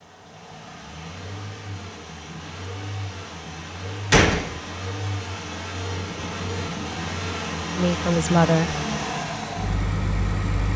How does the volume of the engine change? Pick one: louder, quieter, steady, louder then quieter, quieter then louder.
louder.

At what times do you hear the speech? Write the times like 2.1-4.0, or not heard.
7.8-8.8.